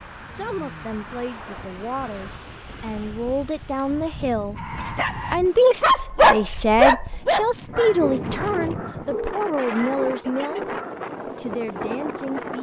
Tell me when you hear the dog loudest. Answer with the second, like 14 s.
6 s.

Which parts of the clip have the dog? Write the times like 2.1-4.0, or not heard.
4.5-11.0.